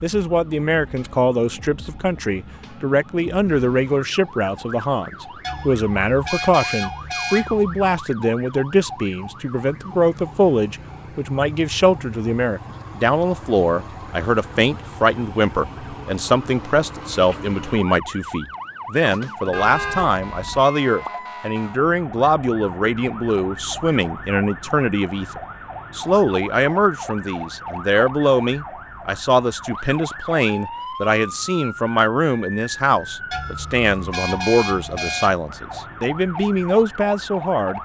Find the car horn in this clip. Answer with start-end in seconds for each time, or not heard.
5.4-8.0, 19.5-20.6, 33.3-35.4.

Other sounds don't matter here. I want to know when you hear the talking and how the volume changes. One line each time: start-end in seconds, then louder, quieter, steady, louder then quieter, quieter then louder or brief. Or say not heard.
0.0-37.7 steady.